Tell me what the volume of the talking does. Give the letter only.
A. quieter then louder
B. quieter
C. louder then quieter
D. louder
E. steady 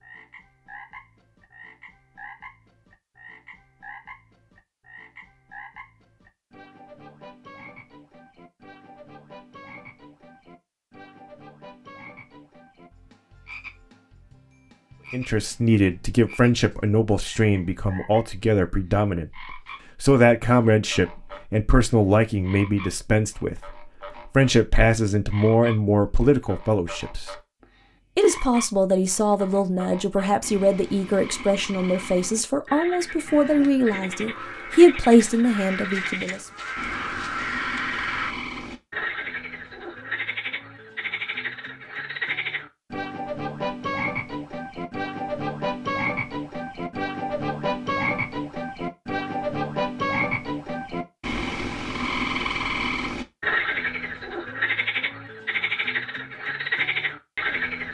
E.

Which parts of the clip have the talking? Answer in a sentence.
You can hear the talking from 15.1 to 27.4 s and from 28.1 to 36.5 s.